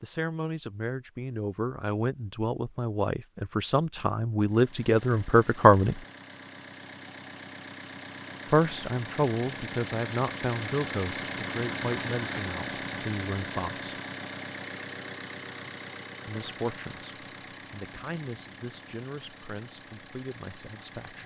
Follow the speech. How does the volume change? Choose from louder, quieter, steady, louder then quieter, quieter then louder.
louder then quieter.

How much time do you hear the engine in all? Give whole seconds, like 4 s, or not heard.
17 s.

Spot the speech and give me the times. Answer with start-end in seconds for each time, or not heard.
0.0-6.0, 8.5-13.9, 16.2-21.2.